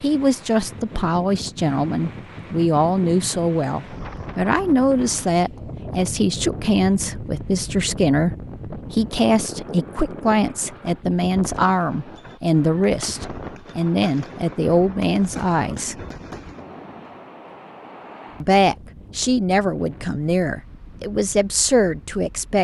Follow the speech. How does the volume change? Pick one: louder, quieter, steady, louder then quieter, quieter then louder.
steady.